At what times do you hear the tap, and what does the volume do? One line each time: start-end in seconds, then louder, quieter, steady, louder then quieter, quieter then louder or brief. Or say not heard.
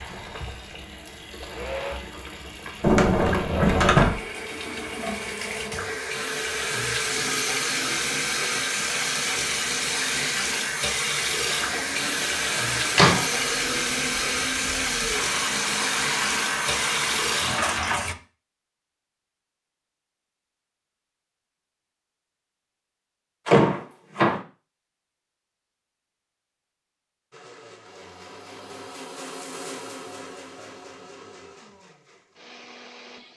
0.0-18.1 louder.